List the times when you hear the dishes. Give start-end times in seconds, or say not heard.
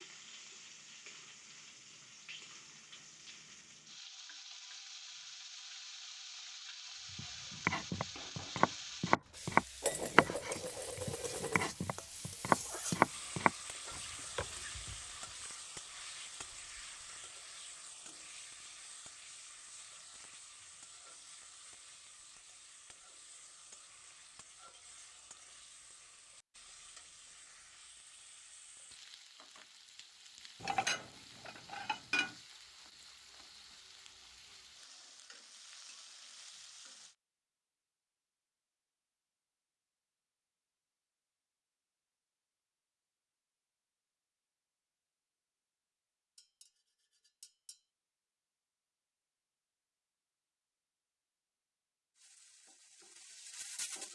9.8-11.7, 30.6-32.4, 46.4-47.8.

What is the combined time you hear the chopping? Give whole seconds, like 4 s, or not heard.
8 s.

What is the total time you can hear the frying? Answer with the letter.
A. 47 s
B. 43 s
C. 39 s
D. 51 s
C.